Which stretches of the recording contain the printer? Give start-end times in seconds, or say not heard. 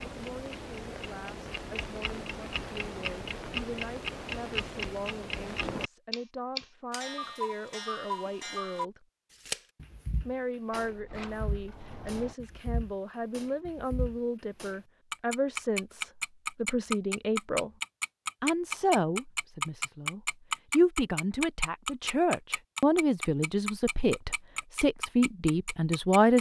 not heard.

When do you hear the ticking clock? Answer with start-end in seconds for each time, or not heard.
0.0-26.3.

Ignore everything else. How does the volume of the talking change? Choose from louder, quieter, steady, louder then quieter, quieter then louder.
louder.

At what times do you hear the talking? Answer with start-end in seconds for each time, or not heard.
0.0-9.1, 10.2-17.7, 18.4-26.3.